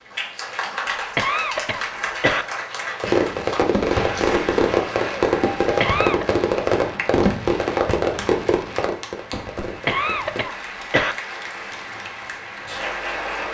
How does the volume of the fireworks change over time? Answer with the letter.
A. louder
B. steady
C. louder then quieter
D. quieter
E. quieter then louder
D.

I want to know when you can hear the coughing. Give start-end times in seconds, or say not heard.
1.1-2.5, 5.8-6.2, 9.8-11.2.